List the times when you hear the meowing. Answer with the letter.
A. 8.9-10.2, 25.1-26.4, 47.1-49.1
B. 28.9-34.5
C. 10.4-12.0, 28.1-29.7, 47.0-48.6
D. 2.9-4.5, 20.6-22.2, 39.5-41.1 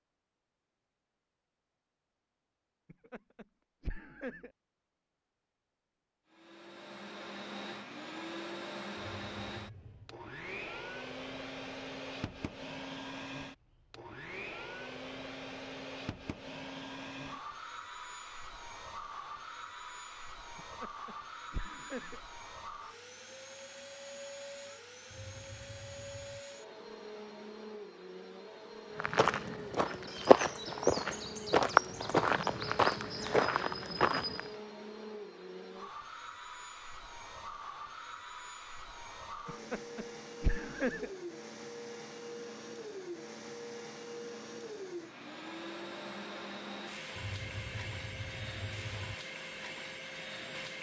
A.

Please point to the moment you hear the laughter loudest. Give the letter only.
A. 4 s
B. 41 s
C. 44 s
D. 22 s
B.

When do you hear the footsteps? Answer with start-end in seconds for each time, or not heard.
28.9-34.5.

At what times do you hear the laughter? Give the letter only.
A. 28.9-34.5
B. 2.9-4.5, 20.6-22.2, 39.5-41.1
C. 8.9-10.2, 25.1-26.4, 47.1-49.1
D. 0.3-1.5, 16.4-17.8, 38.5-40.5
B.